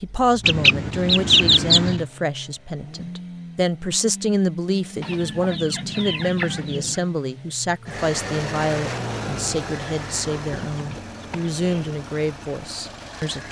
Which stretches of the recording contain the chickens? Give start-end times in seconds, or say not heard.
0.4-2.0, 5.0-7.0, 10.1-11.9.